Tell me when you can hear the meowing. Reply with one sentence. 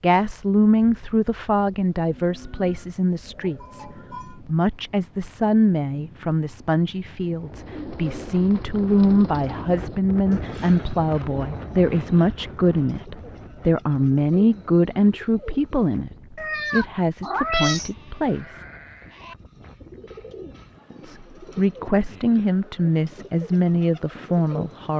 You can hear the meowing from 16.4 to 17.9 s.